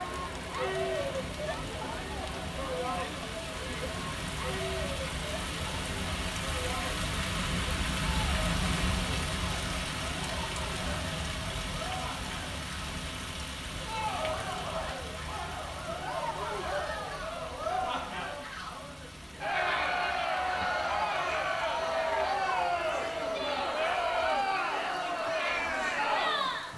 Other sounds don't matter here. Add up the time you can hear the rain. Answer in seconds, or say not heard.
27 s.